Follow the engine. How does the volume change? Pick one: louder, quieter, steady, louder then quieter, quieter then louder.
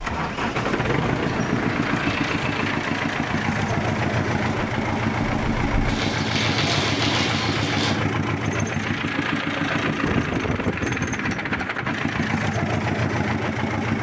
steady.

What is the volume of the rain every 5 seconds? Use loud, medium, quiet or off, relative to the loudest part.
medium, loud, off.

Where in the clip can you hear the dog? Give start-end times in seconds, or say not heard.
not heard.